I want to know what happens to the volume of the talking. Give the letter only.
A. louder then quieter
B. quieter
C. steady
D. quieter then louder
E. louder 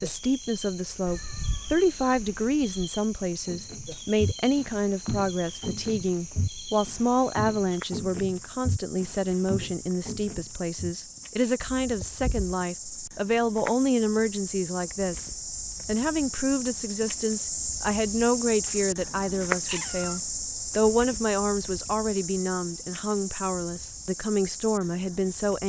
C.